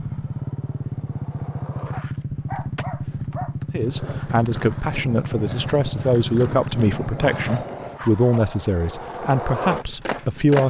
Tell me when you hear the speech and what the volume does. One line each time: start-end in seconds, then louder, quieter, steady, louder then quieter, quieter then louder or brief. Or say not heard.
3.7-10.6 steady.